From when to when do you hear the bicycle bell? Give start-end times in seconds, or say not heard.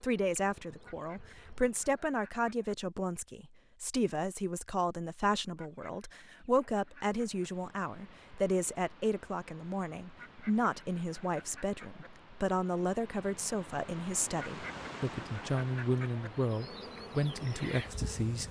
not heard.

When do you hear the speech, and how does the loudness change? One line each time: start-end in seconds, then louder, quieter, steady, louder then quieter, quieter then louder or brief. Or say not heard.
0.0-18.4 steady.